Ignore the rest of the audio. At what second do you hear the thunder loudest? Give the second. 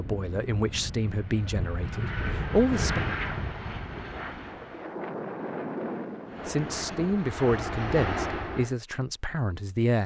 6 s.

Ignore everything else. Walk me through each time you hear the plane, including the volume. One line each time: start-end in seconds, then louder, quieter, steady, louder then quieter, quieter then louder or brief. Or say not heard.
0.0-4.9 louder then quieter
6.2-8.8 brief.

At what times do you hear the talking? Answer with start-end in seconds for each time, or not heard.
0.0-3.0, 6.5-10.0.